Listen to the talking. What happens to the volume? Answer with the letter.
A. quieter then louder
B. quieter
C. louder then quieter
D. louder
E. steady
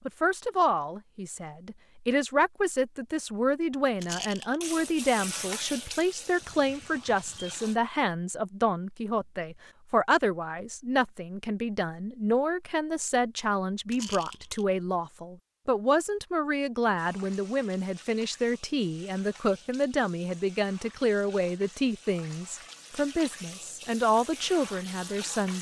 E.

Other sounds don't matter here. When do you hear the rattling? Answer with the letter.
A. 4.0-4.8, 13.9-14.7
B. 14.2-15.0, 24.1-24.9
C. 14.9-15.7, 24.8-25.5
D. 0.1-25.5
A.